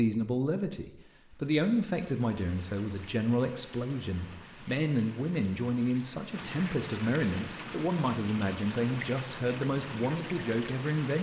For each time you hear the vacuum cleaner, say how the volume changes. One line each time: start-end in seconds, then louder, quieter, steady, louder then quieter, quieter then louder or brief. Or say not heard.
not heard.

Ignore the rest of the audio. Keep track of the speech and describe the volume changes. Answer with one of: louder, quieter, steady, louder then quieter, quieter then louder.
steady.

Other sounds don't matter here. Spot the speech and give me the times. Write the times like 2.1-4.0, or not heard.
0.0-11.1.